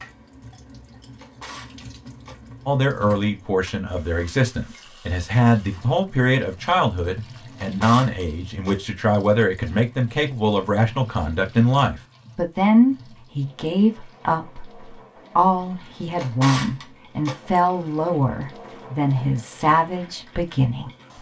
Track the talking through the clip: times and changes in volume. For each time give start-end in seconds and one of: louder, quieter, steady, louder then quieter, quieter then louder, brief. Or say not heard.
2.6-20.9 steady.